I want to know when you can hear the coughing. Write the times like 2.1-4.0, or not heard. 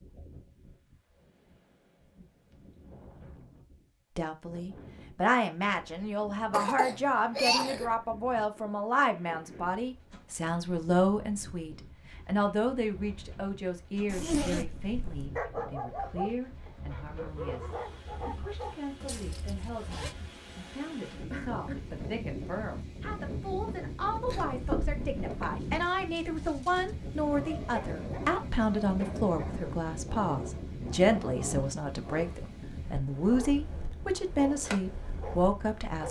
6.5-7.9, 21.3-21.9, 24.2-25.6.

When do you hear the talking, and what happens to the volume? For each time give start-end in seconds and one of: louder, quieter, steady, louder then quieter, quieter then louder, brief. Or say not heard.
4.2-36.0 quieter then louder.